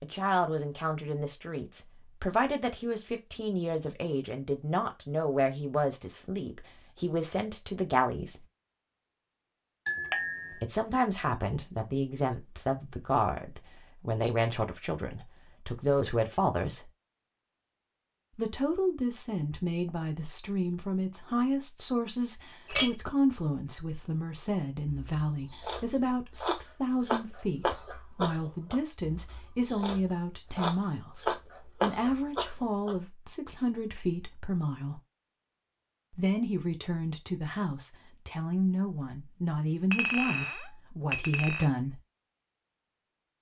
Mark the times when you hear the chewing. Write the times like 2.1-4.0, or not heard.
24.9-33.5.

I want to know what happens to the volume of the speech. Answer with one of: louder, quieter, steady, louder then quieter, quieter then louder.
steady.